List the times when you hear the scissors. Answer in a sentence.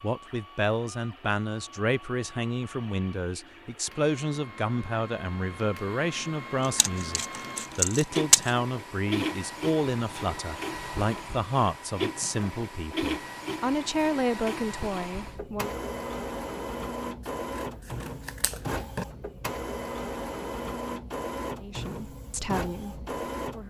The scissors can be heard from 6.6 to 8.6 s and from 17.6 to 19.1 s.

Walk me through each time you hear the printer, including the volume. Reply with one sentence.
You can hear the printer from 0.0 to 23.6 s, getting louder.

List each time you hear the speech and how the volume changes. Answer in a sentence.
The speech can be heard from 0.0 to 15.7 s, at a steady volume; and briefly from 21.6 to 23.6 s.